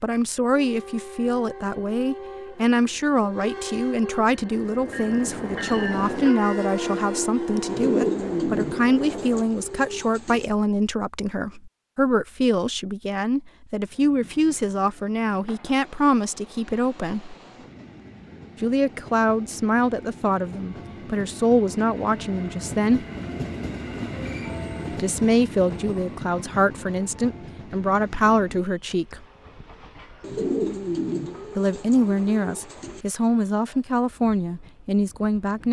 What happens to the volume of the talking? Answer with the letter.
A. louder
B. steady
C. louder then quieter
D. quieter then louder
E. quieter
B.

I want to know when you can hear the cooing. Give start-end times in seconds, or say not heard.
7.7-10.4, 30.2-33.0.